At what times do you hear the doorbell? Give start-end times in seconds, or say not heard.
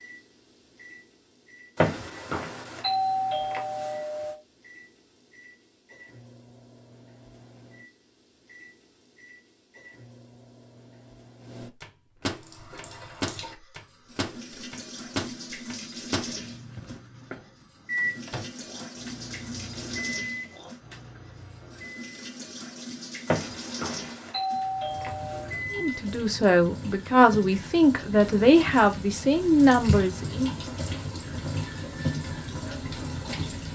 1.8-4.3, 23.2-25.5.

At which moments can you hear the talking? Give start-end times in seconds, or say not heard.
25.7-30.6.